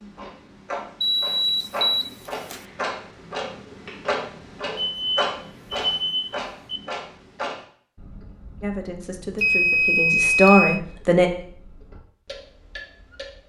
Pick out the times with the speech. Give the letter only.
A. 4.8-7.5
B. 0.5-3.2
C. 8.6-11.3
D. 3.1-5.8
C.